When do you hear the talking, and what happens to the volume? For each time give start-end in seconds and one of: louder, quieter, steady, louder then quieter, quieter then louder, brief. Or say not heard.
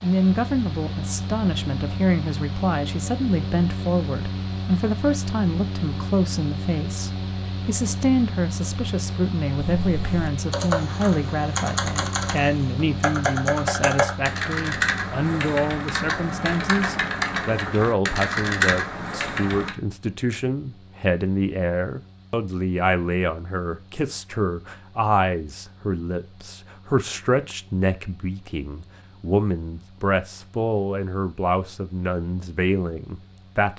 0.0-33.7 steady.